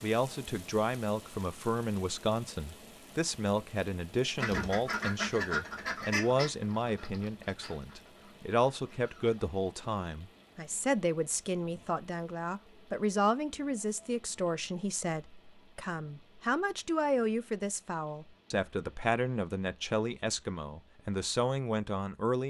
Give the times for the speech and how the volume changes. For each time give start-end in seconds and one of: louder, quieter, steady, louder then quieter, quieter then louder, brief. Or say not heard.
0.0-22.4 steady.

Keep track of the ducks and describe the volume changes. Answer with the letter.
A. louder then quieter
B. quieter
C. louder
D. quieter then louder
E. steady
B.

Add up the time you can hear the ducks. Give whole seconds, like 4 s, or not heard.
5 s.